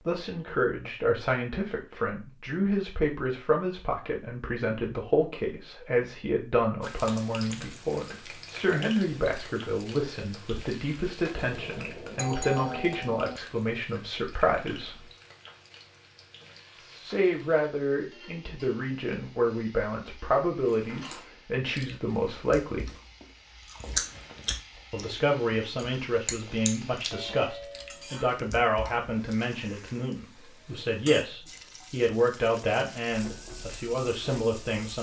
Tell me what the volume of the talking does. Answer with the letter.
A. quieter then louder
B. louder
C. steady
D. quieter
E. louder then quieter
C.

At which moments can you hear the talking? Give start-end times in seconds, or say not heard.
0.1-15.1, 16.8-22.9, 24.9-34.9.